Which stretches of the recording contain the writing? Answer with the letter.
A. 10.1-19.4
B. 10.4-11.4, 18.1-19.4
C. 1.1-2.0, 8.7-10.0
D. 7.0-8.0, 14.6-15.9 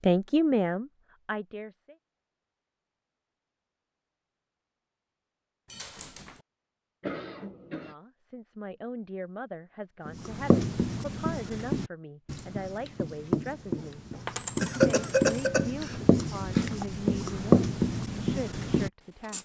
A.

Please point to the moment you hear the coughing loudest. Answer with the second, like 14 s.
15 s.